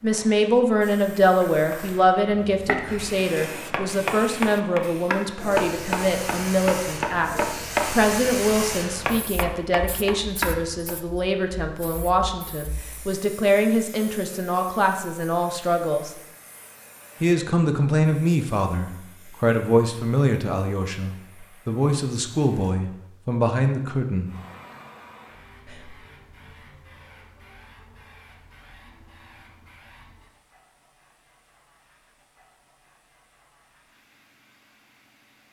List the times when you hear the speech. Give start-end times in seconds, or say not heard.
0.0-16.1, 17.2-24.3.